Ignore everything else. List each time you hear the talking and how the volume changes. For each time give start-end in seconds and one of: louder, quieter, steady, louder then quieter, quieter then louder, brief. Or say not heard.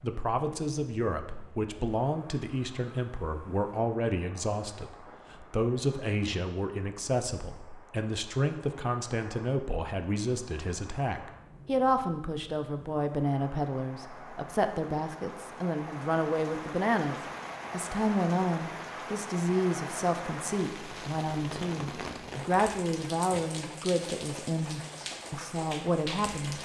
0.0-26.6 steady.